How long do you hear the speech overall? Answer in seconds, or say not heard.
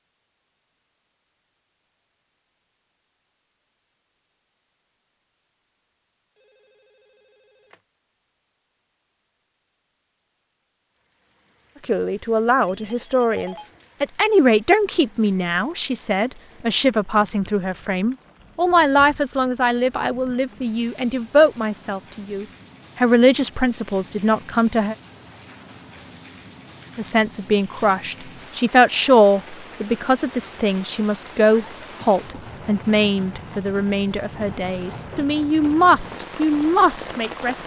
24 s.